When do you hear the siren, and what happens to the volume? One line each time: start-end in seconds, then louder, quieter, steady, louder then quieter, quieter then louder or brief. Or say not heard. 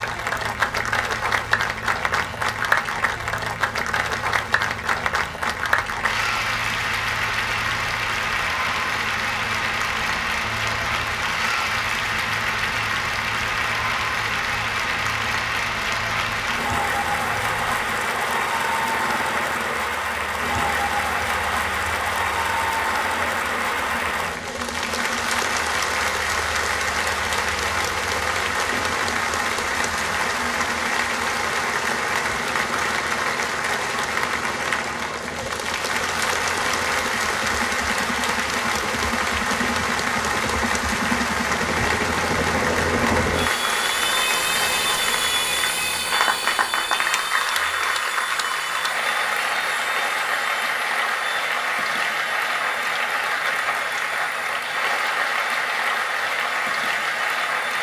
not heard.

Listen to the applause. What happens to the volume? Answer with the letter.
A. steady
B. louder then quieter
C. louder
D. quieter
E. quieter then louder
A.